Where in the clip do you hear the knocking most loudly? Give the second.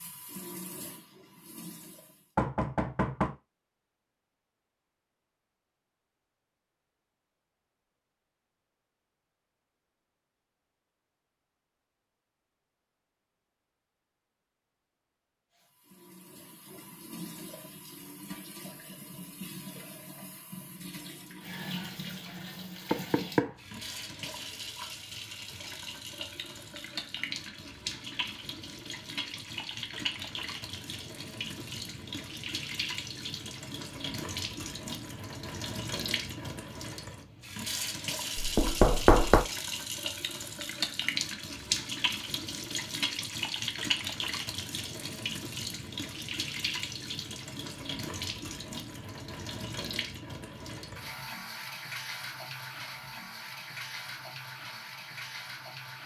39 s.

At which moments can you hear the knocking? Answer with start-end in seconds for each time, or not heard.
2.4-3.4, 22.9-23.6, 38.4-39.5.